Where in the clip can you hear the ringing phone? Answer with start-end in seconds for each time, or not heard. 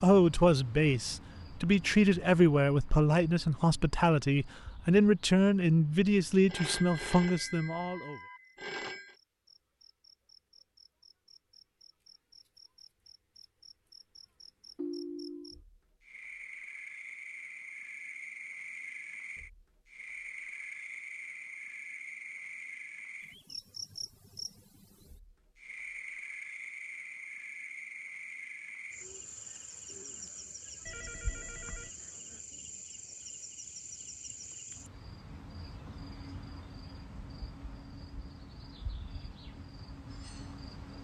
6.5-9.2, 14.8-15.6, 30.9-31.9.